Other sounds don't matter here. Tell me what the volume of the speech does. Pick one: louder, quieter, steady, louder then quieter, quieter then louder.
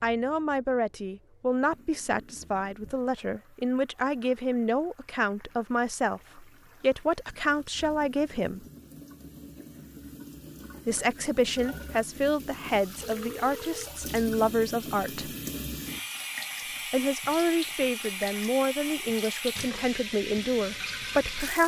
steady.